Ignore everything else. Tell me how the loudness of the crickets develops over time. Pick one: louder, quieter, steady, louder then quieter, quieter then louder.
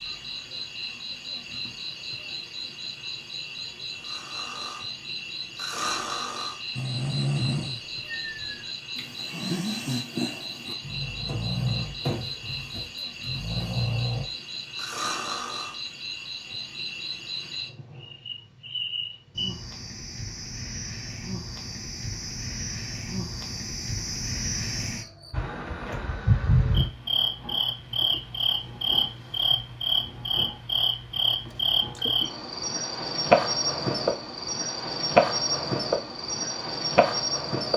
louder.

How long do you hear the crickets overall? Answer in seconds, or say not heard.
38 s.